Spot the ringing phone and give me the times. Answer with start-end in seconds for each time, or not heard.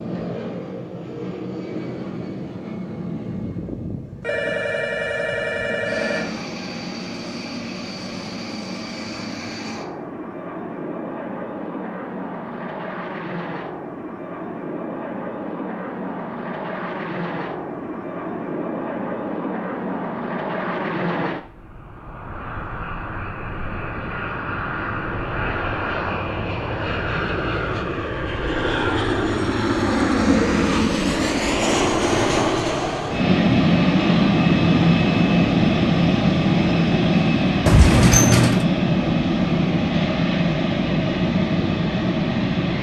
4.2-6.4.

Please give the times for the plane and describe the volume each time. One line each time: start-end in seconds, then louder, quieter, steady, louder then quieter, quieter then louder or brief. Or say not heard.
0.0-42.7 louder.